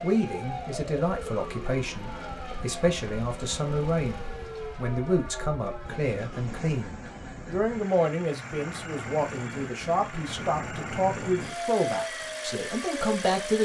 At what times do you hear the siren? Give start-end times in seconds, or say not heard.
0.0-13.5.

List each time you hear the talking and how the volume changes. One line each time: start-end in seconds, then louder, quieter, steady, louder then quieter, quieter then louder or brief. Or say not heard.
0.0-13.5 steady.